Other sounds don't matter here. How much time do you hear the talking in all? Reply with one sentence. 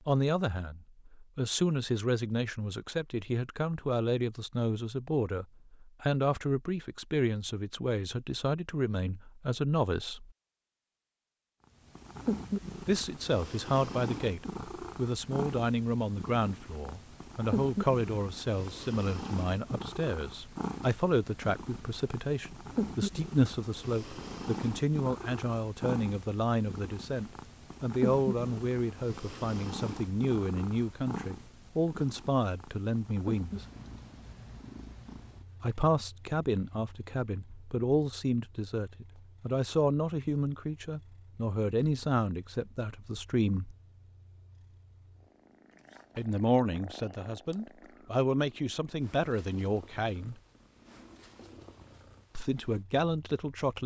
You can hear the talking for 45 seconds altogether.